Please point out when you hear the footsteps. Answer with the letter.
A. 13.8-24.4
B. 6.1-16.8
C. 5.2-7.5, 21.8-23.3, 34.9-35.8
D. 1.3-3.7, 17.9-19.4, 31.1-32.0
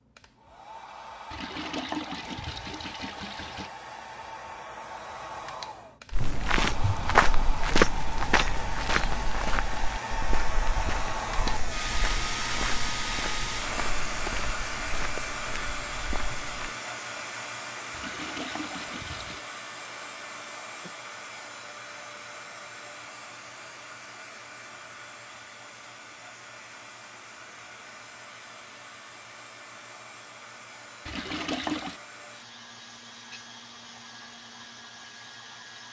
B.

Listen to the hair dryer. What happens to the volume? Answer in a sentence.
The loudness of the hair dryer goes up, then down.